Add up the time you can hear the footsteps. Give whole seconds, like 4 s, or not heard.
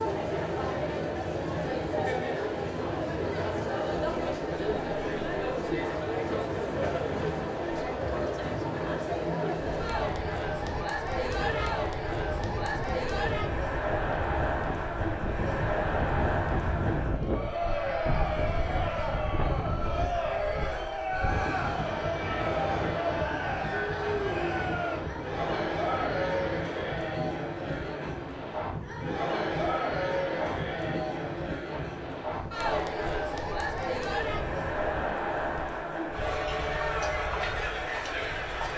not heard.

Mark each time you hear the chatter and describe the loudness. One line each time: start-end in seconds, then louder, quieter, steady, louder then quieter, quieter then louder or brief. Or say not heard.
0.0-38.7 steady.